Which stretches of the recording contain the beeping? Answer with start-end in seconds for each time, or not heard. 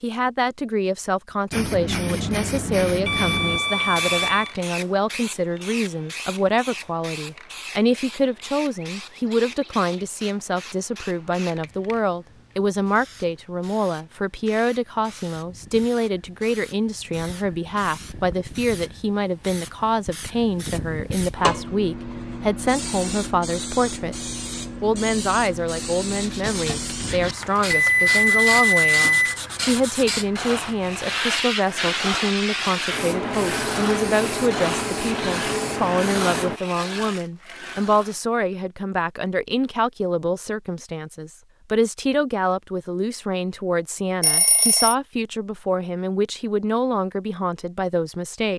3.0-4.5, 27.7-29.4, 44.2-45.0.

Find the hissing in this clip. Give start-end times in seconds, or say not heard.
1.5-36.6.